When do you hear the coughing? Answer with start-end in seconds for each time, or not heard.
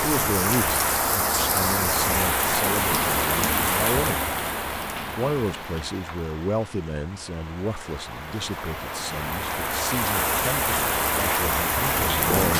not heard.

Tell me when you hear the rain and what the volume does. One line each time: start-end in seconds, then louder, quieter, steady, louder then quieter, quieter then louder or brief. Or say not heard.
0.0-12.5 quieter then louder.